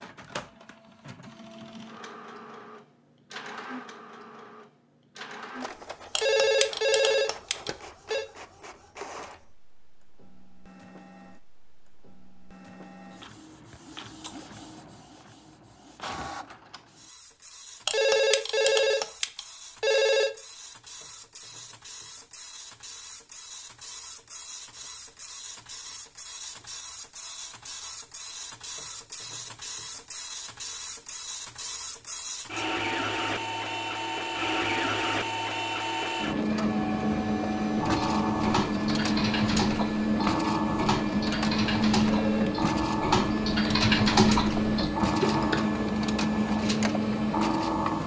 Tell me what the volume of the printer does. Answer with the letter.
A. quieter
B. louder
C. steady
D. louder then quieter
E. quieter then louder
B.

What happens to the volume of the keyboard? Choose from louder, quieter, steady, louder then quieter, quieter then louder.
louder.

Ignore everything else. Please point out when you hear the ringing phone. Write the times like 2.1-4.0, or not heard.
6.2-8.2, 17.9-20.3, 42.0-42.6.